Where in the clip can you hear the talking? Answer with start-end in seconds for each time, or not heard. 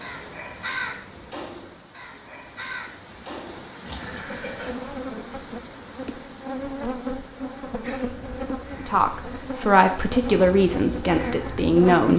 8.8-12.1.